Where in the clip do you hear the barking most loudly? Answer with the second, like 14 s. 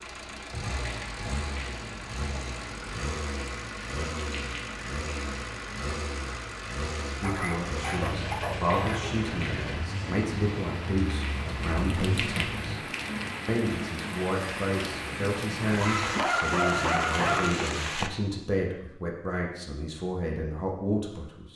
17 s.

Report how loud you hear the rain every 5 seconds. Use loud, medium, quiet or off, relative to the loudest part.
medium, medium, loud, loud, off.